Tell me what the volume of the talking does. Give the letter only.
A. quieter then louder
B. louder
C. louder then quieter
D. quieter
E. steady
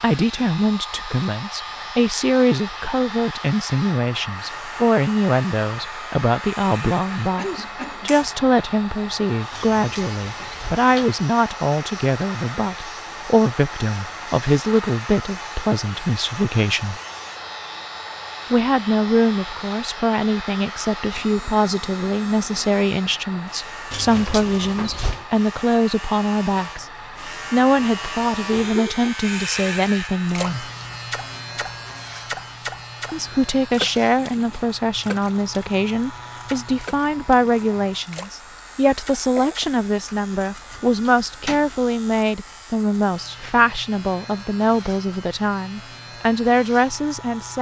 E.